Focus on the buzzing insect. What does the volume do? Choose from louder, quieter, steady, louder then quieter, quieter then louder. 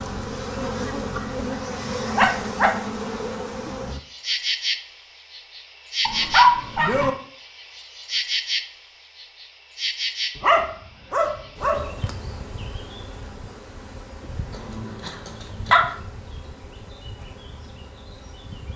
quieter.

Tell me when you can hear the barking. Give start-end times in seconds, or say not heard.
2.1-2.8, 6.0-7.1, 10.3-11.9, 14.5-15.8.